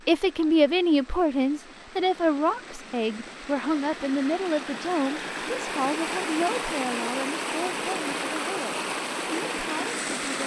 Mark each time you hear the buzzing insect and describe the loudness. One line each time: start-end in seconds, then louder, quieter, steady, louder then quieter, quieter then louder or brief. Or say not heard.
not heard.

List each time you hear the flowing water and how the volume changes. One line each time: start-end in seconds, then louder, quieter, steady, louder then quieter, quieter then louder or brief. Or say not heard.
0.0-10.4 louder.